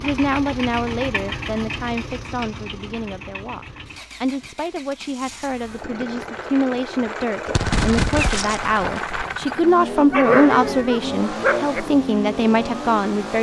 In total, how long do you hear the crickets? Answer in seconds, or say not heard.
not heard.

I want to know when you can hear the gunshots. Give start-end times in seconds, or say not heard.
7.5-9.0.